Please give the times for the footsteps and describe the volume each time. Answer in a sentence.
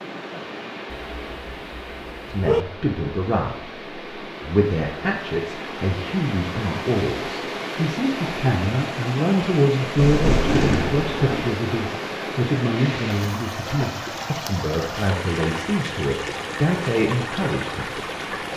The footsteps can't be heard in this clip.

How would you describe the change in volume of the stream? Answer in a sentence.
The loudness of the stream goes up.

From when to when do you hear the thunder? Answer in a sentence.
The thunder can be heard from 9.9 to 11.5 s.